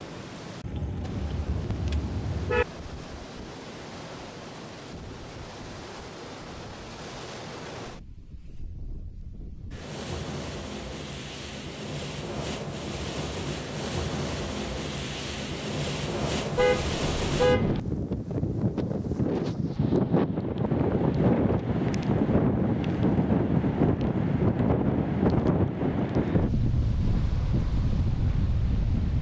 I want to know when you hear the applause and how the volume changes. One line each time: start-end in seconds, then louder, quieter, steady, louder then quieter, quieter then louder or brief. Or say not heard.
not heard.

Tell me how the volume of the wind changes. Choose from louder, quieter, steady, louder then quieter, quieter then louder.
louder.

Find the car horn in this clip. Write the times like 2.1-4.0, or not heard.
0.6-2.6, 16.6-17.8.